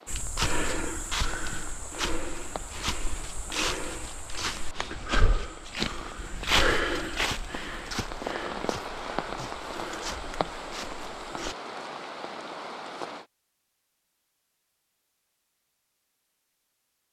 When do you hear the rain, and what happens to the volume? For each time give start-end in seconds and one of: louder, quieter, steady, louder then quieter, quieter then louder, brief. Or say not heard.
0.0-13.2 louder.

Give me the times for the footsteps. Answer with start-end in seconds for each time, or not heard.
0.1-11.6.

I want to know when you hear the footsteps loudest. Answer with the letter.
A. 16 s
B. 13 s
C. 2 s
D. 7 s
D.